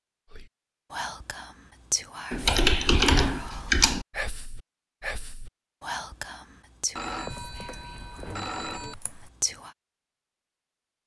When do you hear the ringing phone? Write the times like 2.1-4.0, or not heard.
7.0-8.9.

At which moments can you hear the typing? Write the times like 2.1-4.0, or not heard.
2.3-4.0, 7.3-9.3.